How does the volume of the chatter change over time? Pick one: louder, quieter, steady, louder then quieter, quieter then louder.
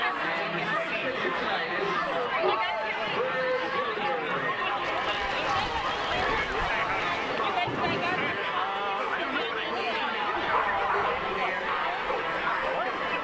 steady.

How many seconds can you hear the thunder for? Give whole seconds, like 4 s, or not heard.
3 s.